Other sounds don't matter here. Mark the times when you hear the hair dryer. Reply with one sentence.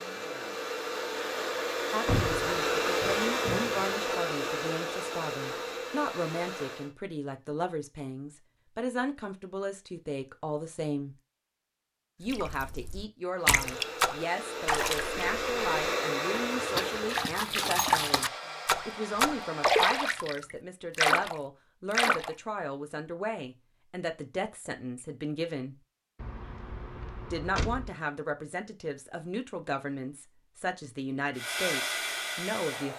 You can hear the hair dryer from 0.0 to 6.9 s, from 13.3 to 20.3 s and from 31.4 to 32.9 s.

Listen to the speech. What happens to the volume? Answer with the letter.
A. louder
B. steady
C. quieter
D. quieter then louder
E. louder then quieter
B.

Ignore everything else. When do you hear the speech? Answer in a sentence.
You can hear the speech from 1.9 to 11.2 s, from 12.2 to 25.8 s and from 27.3 to 32.9 s.